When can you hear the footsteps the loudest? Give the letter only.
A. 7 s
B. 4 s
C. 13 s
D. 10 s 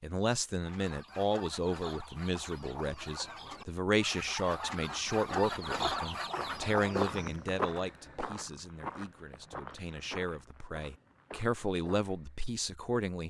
A.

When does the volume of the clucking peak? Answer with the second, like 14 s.
6 s.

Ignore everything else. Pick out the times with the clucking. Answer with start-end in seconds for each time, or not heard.
0.6-7.3.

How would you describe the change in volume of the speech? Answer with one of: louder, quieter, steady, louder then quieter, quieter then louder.
quieter then louder.